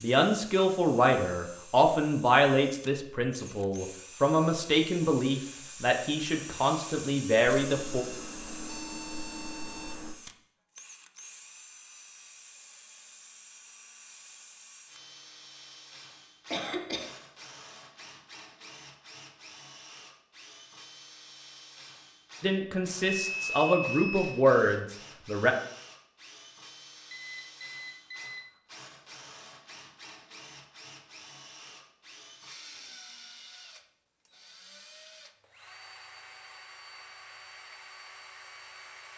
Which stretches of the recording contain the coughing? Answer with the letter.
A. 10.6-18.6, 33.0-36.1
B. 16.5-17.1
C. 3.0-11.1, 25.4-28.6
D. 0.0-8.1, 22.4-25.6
B.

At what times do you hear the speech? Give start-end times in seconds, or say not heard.
0.0-8.1, 22.4-25.6.